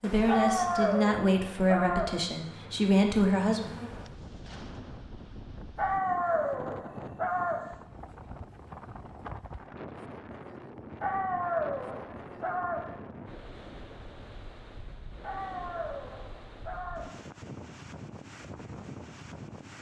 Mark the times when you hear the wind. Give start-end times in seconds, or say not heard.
3.9-19.7.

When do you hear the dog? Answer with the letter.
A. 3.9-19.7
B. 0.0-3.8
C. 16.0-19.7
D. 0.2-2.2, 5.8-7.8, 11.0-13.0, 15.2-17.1
D.